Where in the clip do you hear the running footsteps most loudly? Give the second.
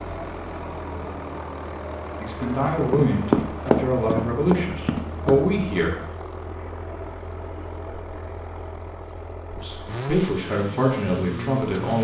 3 s.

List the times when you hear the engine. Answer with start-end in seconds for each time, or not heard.
0.0-11.9.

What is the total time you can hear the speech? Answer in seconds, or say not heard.
6 s.